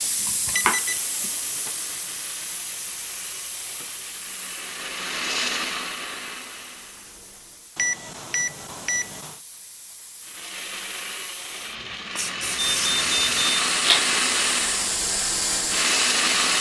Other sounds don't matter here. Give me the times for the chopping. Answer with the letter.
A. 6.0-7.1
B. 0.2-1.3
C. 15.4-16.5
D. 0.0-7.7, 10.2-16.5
B.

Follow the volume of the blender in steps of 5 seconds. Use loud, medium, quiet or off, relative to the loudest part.
quiet, medium, loud, loud.